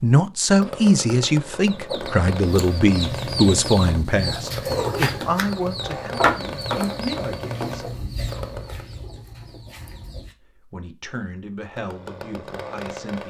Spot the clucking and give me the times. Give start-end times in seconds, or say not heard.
1.6-10.3.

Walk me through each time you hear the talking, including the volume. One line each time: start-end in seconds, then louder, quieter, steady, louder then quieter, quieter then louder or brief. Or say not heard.
0.0-7.8 quieter
10.6-13.2 brief.